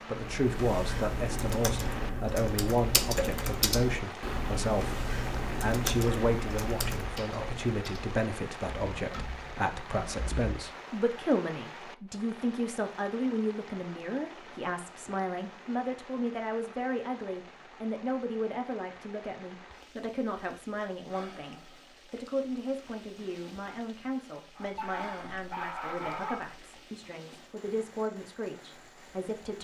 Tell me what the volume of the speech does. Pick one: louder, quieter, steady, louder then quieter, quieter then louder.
quieter.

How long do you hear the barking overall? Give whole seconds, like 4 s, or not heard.
2 s.